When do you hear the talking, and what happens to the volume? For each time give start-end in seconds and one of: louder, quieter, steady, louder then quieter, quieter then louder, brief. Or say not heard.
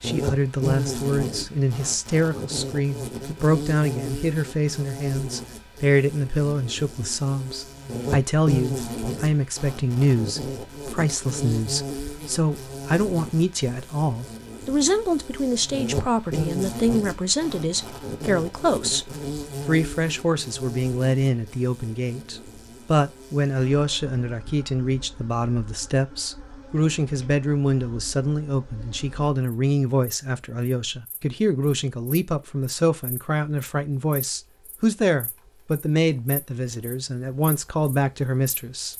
0.0-38.9 steady.